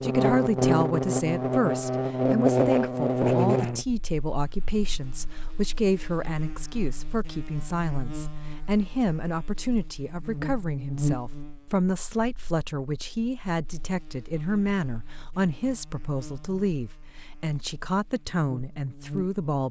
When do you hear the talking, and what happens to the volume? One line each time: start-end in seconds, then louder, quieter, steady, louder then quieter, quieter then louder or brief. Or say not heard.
0.0-19.6 steady.